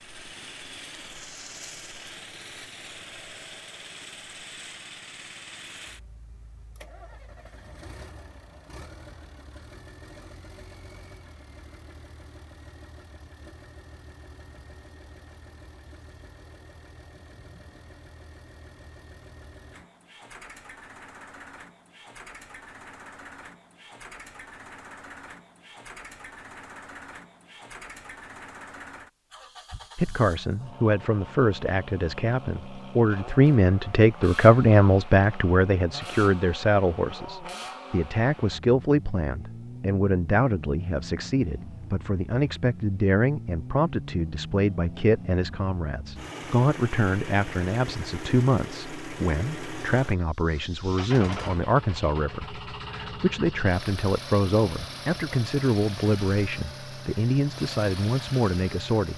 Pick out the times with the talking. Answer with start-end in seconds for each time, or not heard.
29.9-59.1.